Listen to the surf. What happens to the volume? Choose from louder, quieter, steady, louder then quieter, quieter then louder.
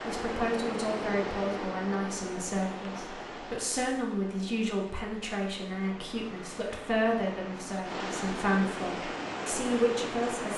quieter then louder.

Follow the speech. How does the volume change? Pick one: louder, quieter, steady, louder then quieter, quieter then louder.
steady.